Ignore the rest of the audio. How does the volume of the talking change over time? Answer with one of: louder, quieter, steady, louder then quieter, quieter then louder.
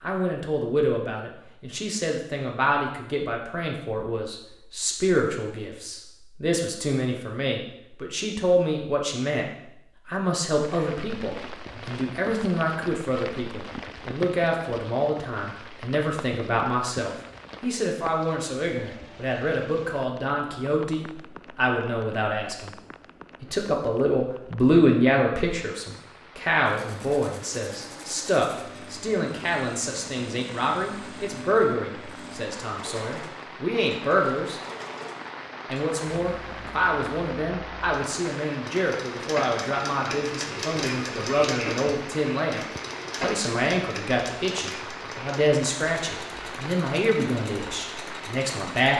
steady.